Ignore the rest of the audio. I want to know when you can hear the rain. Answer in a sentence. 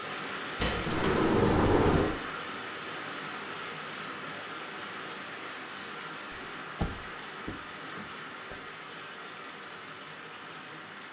You can hear the rain from 0.0 to 11.0 s.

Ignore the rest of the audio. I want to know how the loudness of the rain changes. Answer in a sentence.
The volume of the rain goes down.